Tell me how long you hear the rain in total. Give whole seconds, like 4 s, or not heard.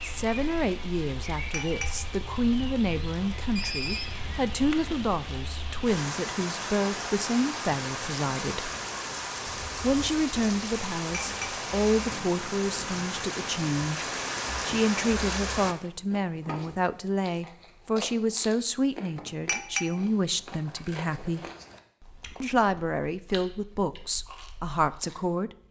16 s.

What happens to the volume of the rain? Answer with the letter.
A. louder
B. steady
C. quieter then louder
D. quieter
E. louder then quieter
A.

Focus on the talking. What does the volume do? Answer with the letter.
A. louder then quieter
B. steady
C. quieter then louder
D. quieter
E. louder
B.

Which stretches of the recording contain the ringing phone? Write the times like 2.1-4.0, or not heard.
3.5-4.1.